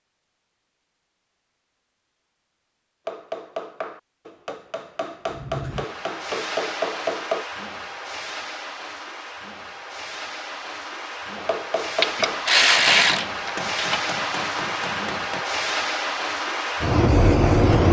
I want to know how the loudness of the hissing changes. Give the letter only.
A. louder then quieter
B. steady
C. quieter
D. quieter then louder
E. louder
E.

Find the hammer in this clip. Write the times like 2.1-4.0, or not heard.
3.0-7.5, 11.3-15.4.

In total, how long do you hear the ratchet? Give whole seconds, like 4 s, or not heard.
2 s.